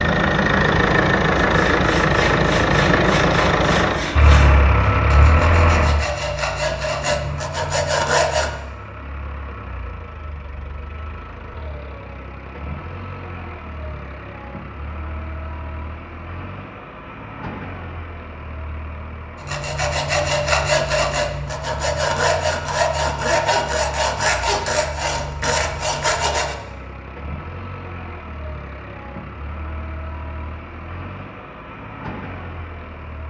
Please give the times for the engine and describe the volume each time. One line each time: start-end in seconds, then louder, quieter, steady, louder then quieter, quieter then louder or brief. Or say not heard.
0.0-33.2 quieter.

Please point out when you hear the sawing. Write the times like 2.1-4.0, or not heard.
1.4-8.5, 19.4-26.6.